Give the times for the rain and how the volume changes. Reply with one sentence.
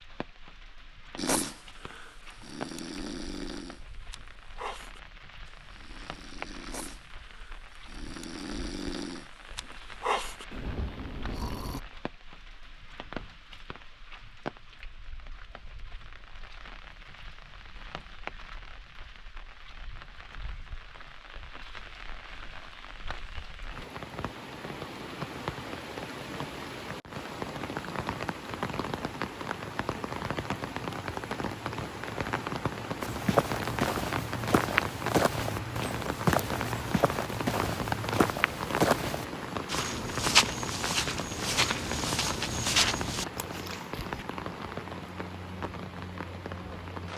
You can hear the rain from 0.0 to 47.1 s, getting louder.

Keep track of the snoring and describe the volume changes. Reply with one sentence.
The loudness of the snoring goes down, then up.